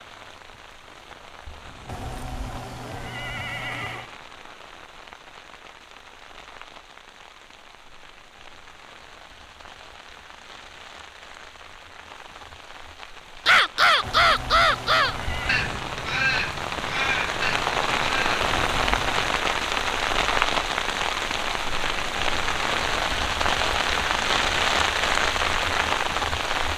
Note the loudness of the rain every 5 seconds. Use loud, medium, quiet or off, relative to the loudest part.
quiet, quiet, quiet, loud, loud, loud.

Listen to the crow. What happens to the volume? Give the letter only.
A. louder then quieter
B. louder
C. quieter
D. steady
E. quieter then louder
C.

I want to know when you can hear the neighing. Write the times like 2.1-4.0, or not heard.
1.9-4.1, 14.0-15.6, 18.4-19.4.